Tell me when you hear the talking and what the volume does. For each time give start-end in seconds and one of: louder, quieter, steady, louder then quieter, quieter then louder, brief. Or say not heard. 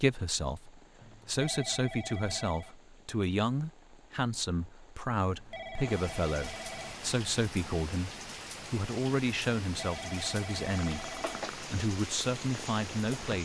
0.0-13.4 steady.